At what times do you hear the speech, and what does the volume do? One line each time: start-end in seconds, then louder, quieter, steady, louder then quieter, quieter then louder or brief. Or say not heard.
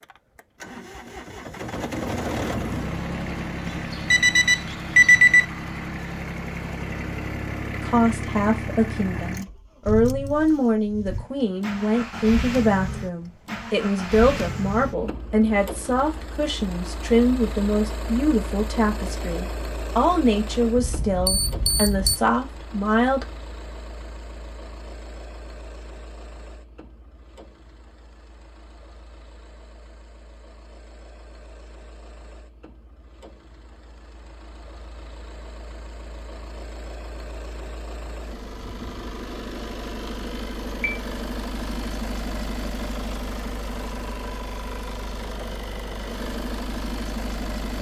7.7-23.2 steady.